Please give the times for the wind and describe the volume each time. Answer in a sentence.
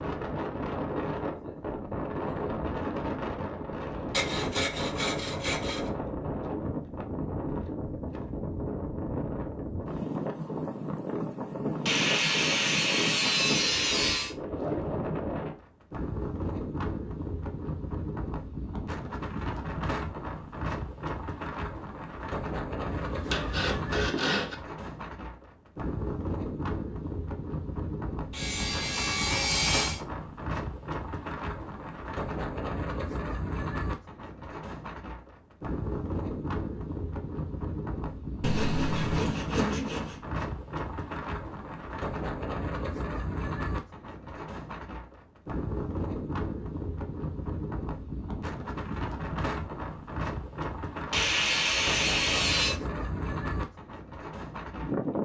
The wind can be heard from 0.0 to 55.1 s, at a steady volume.